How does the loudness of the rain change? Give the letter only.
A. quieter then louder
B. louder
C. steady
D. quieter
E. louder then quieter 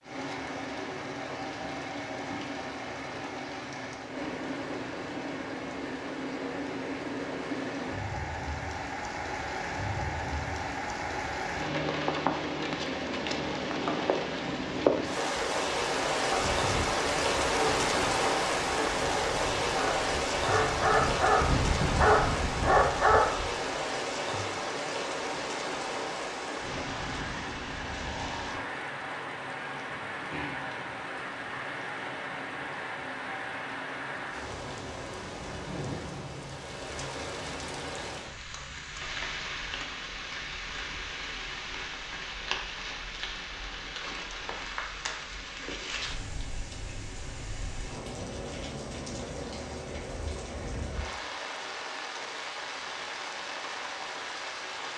E.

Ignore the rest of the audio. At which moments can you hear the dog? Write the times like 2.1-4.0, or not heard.
16.3-23.4.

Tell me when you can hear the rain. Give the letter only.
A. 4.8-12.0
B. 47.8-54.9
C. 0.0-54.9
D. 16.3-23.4
C.